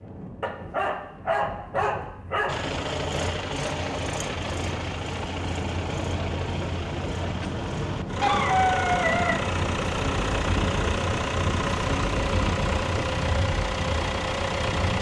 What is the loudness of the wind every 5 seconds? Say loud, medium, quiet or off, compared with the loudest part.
medium, loud, loud.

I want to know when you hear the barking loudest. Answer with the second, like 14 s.
9 s.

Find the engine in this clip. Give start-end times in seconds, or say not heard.
2.5-14.9.